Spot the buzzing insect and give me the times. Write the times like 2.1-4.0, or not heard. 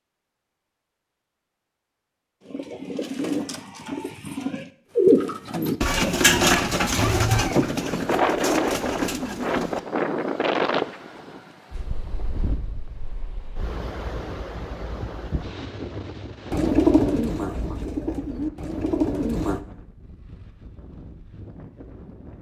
not heard.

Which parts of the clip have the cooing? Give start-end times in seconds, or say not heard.
2.4-9.8, 16.5-19.6.